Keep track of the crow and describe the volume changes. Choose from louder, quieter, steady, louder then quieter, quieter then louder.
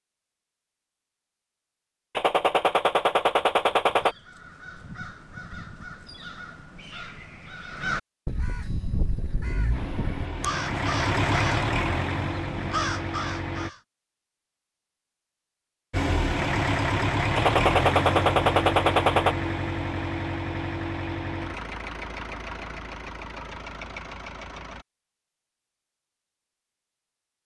louder.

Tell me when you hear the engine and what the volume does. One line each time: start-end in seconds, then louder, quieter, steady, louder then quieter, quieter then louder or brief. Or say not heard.
8.8-13.7 louder then quieter
15.9-24.9 quieter.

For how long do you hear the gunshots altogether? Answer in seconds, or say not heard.
4 s.